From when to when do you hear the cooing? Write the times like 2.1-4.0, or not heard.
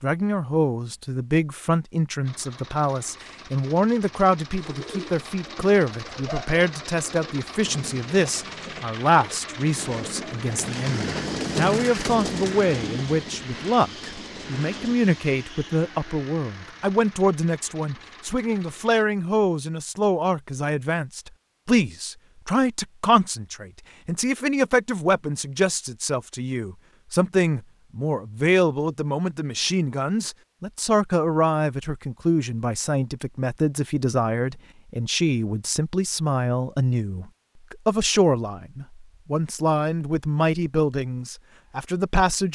4.5-14.9.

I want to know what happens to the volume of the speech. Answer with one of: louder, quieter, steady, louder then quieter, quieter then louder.
steady.